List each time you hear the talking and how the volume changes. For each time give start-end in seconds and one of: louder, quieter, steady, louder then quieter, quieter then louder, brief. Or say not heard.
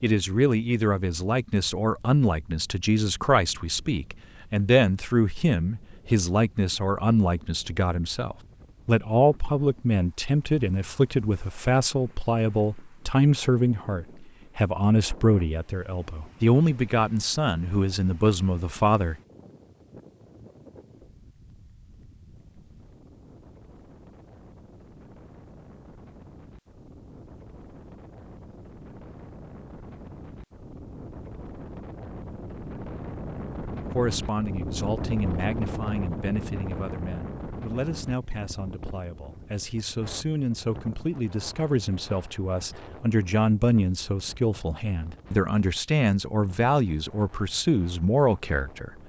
0.0-19.1 steady
33.9-48.9 louder.